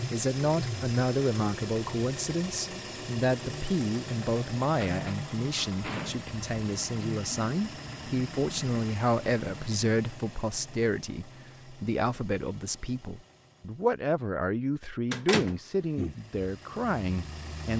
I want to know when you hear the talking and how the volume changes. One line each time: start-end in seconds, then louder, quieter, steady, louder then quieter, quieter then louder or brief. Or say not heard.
0.1-17.7 steady.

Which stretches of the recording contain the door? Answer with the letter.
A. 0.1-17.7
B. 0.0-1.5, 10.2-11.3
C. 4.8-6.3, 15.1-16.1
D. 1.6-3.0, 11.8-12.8
C.